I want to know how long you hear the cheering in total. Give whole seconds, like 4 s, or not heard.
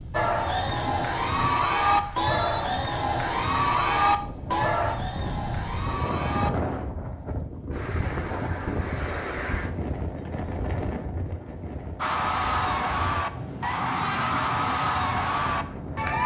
11 s.